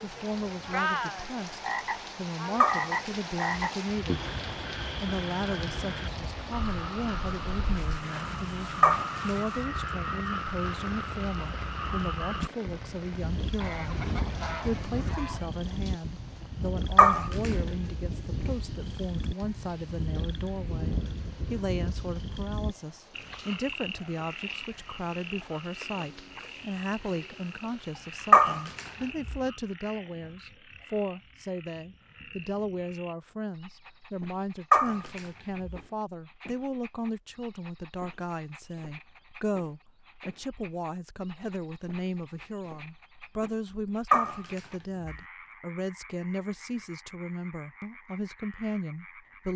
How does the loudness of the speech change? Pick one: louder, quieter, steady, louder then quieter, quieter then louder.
steady.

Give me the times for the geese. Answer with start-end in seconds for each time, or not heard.
13.6-15.5.